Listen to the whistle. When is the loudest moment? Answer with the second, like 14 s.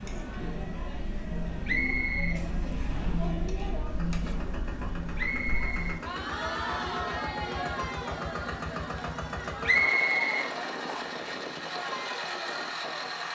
10 s.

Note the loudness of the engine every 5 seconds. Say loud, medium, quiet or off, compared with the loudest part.
medium, loud, loud.